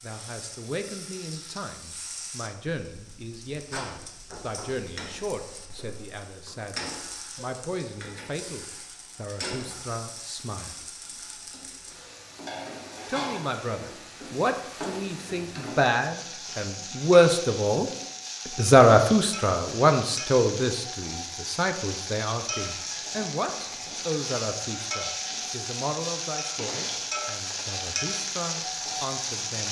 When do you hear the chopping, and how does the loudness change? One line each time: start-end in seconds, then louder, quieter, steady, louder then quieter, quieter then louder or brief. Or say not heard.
not heard.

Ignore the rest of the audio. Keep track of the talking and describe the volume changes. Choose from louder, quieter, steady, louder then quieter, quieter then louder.
louder then quieter.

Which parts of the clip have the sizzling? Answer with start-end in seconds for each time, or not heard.
0.0-29.6.